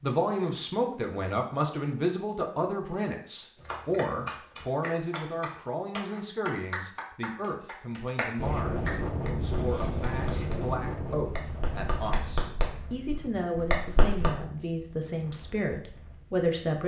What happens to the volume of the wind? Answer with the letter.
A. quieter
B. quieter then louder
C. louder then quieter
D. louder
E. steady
A.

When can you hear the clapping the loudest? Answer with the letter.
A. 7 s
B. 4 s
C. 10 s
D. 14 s
D.